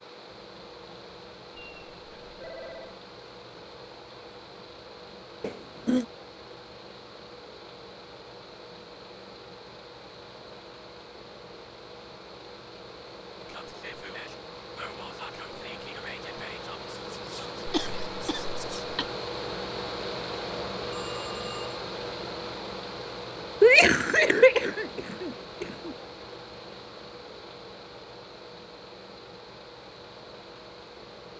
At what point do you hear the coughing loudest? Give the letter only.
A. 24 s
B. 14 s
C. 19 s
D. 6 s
A.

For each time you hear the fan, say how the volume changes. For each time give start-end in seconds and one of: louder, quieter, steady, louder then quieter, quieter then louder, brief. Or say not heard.
0.0-31.3 louder then quieter.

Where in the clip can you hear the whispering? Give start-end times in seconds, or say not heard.
13.3-18.9.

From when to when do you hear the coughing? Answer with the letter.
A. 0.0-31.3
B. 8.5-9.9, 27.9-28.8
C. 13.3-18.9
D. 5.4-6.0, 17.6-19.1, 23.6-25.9
D.